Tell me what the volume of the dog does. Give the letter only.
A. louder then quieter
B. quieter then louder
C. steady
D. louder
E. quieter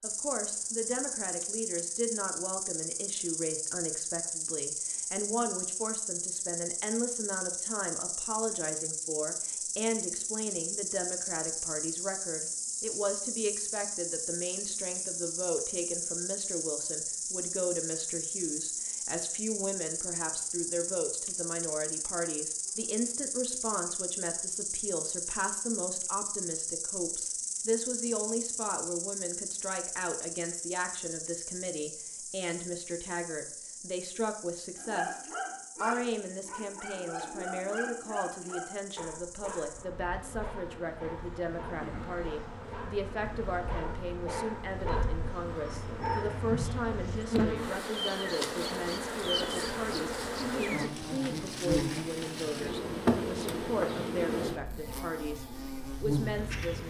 B.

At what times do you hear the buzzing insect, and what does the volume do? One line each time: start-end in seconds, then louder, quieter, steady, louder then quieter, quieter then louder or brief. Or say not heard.
0.0-56.8 quieter then louder.